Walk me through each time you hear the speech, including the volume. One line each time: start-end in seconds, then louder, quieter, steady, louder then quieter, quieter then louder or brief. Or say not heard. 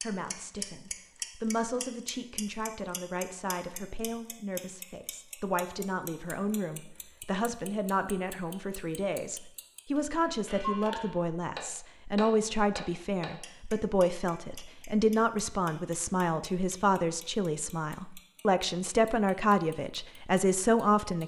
0.0-21.2 louder.